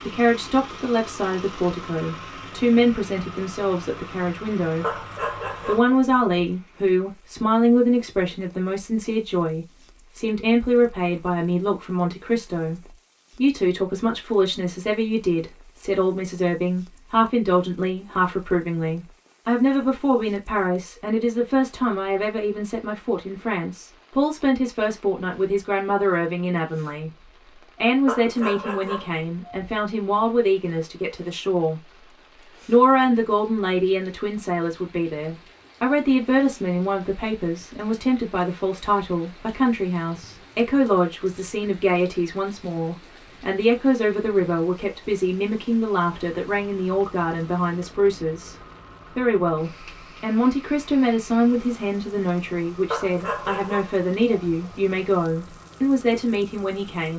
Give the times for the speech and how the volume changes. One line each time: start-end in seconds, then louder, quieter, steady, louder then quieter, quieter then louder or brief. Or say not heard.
0.0-31.9 steady
32.6-57.1 steady.